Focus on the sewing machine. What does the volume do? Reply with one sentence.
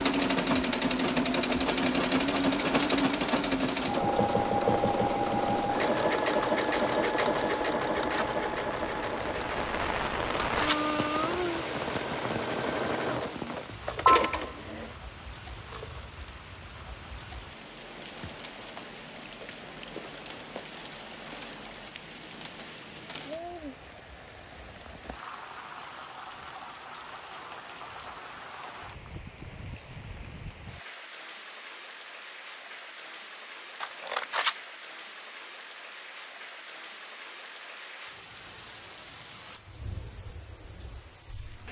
The volume of the sewing machine goes down, then up.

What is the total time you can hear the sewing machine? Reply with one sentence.
The sewing machine can be heard for 15 seconds in total.